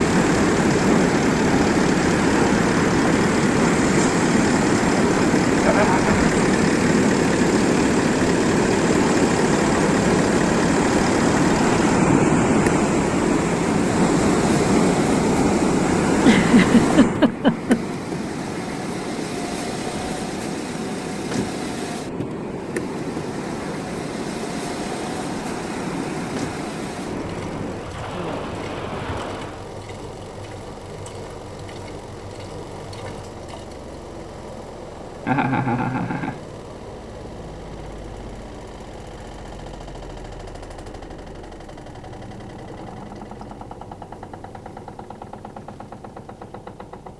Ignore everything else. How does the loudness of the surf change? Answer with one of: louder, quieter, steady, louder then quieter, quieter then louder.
quieter.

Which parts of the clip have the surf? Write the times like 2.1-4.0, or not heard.
0.0-29.7.